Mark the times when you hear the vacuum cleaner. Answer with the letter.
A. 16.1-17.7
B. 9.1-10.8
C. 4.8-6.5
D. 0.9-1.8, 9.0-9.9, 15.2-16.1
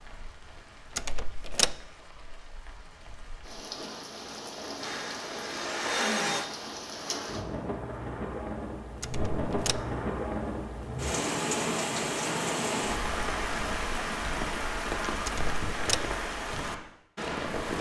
C.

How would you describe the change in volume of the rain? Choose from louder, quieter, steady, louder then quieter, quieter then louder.
louder.